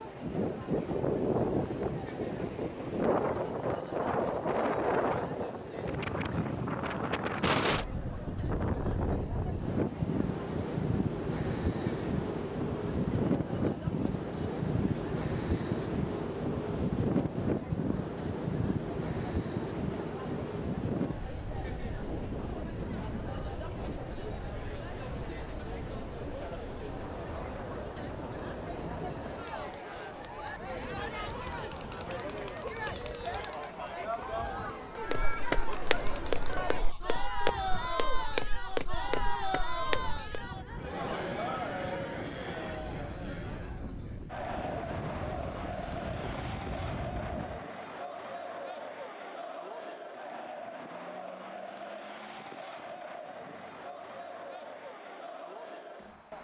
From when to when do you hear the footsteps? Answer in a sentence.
The footsteps can be heard from 35.0 to 40.5 s.